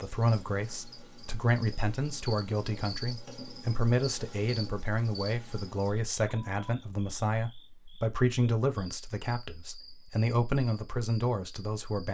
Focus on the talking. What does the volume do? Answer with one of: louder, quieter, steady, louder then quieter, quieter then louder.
steady.